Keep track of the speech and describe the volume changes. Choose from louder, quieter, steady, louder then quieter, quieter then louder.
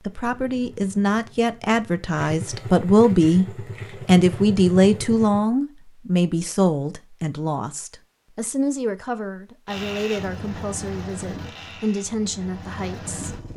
louder then quieter.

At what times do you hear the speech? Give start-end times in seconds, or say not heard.
0.1-3.5, 4.0-13.4.